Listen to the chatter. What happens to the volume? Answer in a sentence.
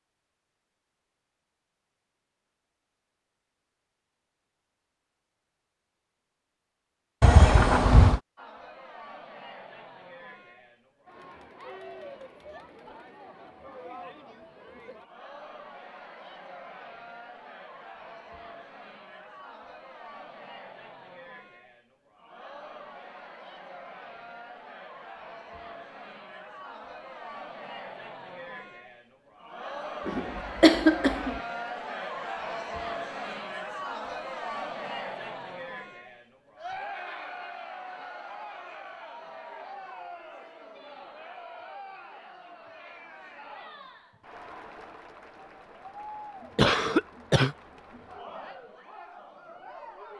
The volume of the chatter goes up, then down.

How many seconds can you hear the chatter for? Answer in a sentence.
You can hear the chatter for 42 seconds altogether.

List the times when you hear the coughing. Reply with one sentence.
You can hear the coughing from 7.2 to 8.2 s, from 30.1 to 31.4 s and from 46.5 to 47.5 s.